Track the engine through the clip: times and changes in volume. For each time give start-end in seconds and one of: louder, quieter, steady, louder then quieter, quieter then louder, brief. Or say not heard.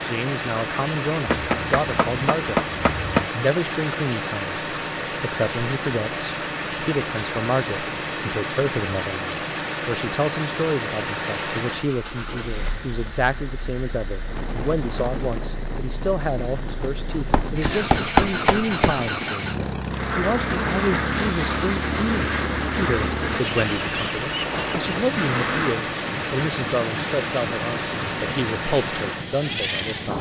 0.0-30.1 quieter then louder.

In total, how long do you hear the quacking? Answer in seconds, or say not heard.
6 s.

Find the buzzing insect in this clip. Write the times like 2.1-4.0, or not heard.
not heard.